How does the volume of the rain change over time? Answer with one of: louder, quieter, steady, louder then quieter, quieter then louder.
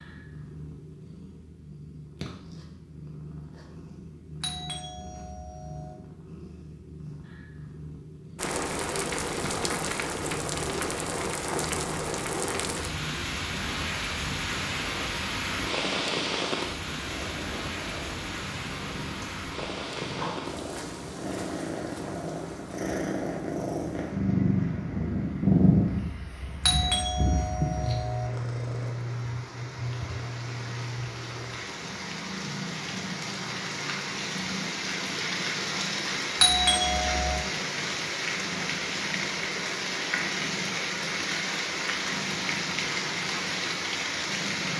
quieter then louder.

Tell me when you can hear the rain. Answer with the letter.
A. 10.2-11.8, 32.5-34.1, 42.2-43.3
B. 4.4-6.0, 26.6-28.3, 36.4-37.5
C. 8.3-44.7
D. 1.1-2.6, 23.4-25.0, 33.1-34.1
C.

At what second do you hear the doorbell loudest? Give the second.
37 s.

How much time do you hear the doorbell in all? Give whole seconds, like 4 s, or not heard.
4 s.